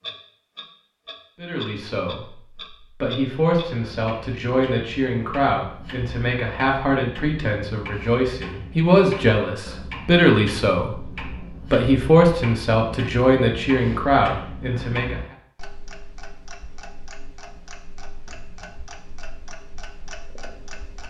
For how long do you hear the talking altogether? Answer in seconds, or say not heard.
14 s.